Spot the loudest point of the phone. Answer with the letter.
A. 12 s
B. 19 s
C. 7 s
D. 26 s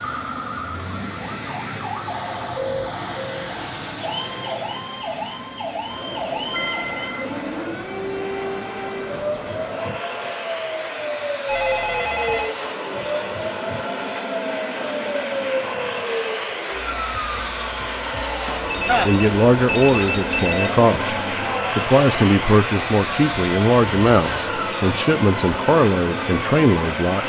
B.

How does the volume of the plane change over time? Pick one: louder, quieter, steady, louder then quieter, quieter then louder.
louder.